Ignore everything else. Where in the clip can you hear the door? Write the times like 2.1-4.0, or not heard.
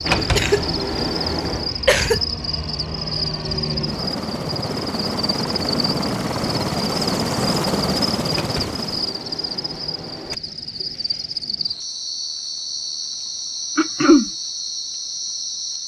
0.0-1.8, 8.3-10.3.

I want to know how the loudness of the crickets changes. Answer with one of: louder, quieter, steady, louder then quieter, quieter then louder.
steady.